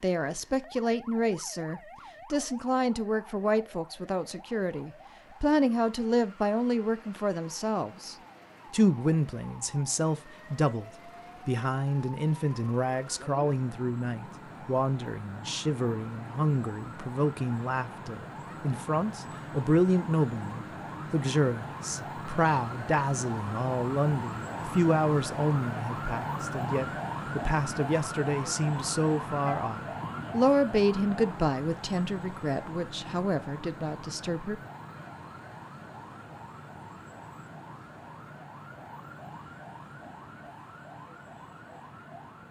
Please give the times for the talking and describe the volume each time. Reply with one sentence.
The talking can be heard from 0.0 to 34.6 s, at a steady volume.